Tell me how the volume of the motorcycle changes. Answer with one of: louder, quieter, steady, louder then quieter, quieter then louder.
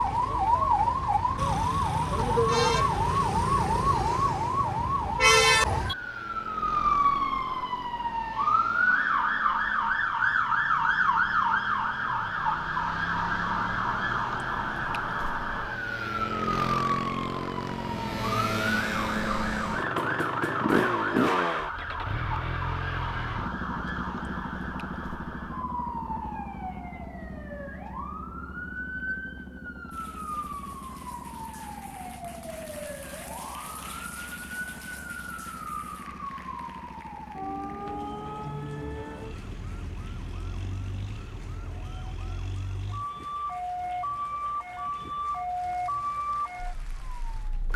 louder then quieter.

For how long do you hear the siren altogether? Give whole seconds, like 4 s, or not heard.
48 s.